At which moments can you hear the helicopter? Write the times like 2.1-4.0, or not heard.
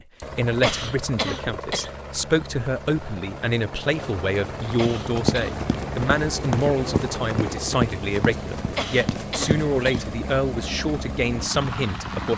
0.0-12.3.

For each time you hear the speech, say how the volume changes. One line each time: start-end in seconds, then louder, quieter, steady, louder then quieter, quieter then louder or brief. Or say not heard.
0.3-12.3 steady.